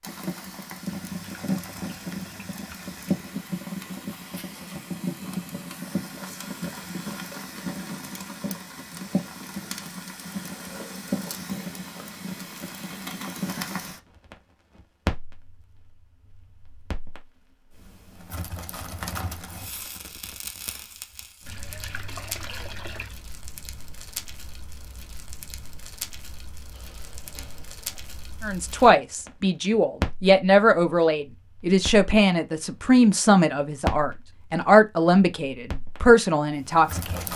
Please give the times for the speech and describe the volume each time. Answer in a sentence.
You can hear the speech from 28.4 to 37.2 s, at a steady volume.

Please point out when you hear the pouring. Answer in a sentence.
You can hear the pouring from 1.1 to 3.2 s, from 21.4 to 23.1 s and from 26.7 to 28.2 s.